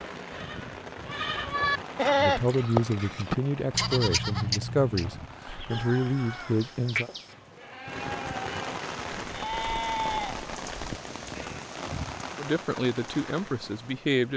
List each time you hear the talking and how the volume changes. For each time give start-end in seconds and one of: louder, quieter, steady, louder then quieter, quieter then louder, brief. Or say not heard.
2.1-7.1 quieter then louder
12.3-14.3 brief.